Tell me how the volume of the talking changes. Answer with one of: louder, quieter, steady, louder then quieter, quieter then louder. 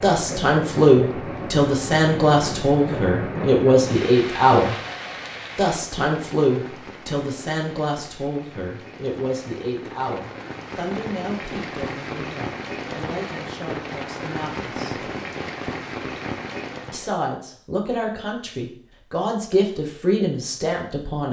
quieter then louder.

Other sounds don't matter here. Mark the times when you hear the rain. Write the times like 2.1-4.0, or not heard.
0.0-17.1.